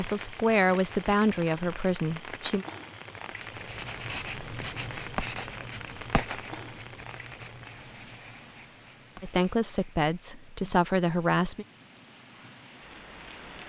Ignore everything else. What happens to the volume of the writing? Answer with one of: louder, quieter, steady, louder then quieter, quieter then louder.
quieter.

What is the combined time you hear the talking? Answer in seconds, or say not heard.
5 s.